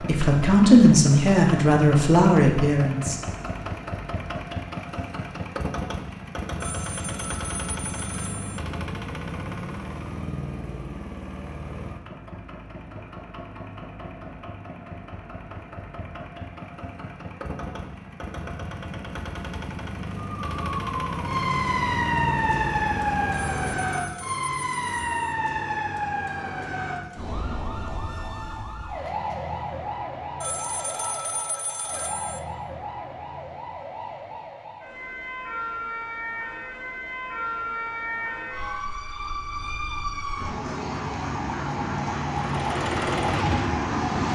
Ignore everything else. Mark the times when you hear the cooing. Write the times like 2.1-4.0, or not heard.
not heard.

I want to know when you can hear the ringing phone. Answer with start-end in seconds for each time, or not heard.
6.6-8.6, 23.3-25.1, 30.4-32.4.